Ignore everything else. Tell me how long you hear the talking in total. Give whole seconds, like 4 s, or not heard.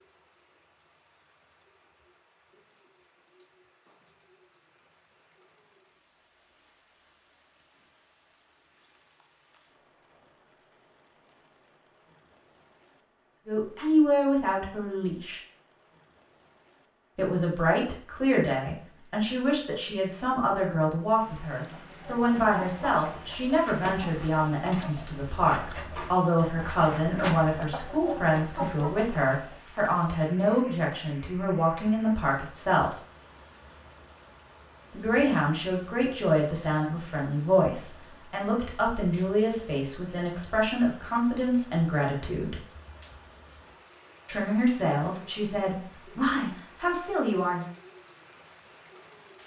29 s.